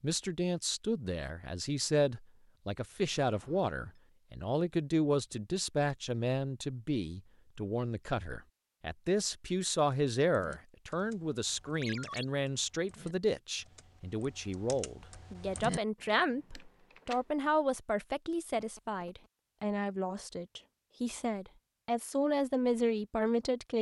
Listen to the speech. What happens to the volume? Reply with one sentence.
The loudness of the speech stays about the same.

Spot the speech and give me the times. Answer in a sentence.
The speech can be heard from 0.0 to 23.7 s.